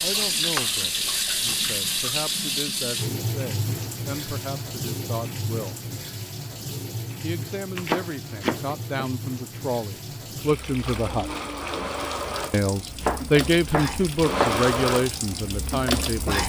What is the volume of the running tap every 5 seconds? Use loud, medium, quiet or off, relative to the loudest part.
loud, medium, loud, loud.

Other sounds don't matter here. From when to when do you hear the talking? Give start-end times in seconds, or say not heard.
0.0-5.8, 7.2-11.3, 12.5-16.4.